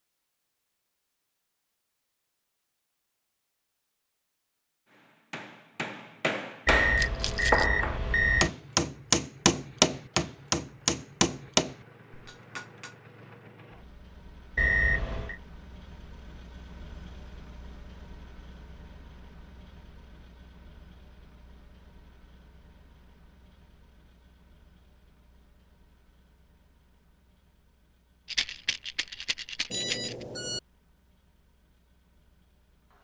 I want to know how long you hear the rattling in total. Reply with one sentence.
The rattling can be heard for 3 seconds in total.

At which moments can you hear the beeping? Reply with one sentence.
You can hear the beeping from 6.7 to 8.5 s, from 14.6 to 15.3 s and from 29.7 to 30.6 s.